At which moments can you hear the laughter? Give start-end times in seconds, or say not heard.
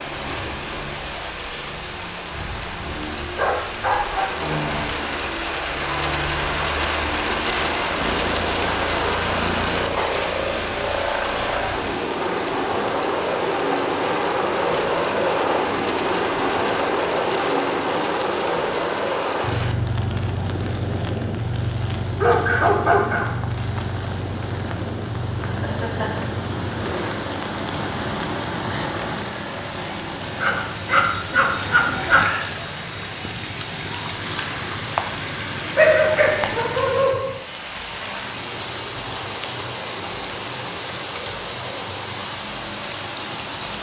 25.4-26.4.